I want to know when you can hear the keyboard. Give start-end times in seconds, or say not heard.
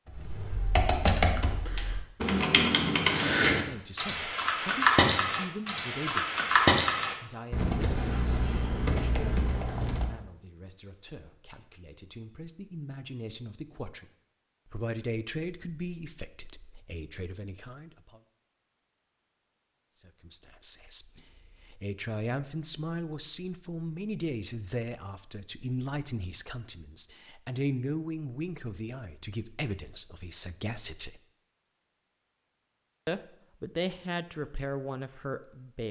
0.1-10.2.